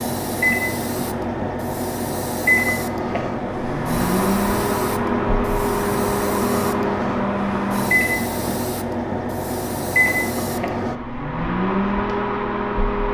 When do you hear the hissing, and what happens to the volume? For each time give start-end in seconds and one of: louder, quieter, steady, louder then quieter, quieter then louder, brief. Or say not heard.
0.0-10.9 steady.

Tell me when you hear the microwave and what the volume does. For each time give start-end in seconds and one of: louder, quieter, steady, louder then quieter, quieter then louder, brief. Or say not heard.
0.0-13.0 steady.